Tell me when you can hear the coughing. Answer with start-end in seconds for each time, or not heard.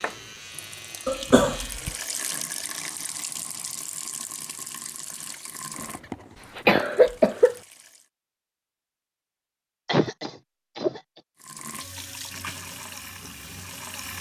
1.1-1.9, 5.8-7.5, 9.8-11.0.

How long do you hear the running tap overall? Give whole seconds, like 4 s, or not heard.
11 s.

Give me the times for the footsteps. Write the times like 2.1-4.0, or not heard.
not heard.